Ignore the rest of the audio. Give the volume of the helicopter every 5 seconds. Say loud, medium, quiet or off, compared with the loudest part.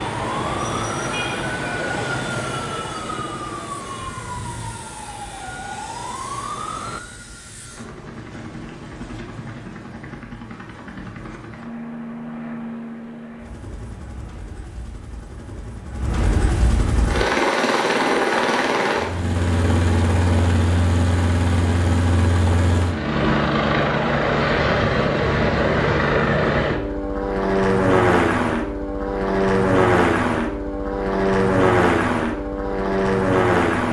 quiet, quiet, quiet, loud, loud, loud, loud.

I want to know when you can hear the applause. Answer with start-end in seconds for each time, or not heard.
not heard.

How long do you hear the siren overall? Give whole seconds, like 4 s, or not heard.
7 s.